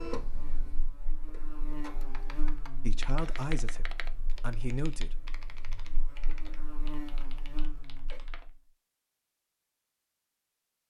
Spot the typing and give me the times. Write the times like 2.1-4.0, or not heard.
2.1-8.5.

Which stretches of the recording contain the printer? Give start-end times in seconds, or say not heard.
0.0-2.5.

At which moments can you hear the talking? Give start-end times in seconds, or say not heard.
2.8-5.2.